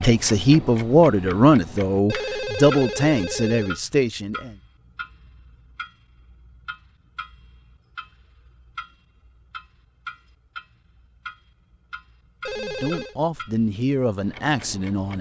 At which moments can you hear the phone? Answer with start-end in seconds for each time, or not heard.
2.0-3.8, 12.4-13.2.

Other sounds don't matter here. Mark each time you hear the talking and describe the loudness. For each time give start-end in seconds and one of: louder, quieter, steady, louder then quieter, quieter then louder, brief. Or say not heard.
0.0-4.5 quieter
12.6-15.1 brief.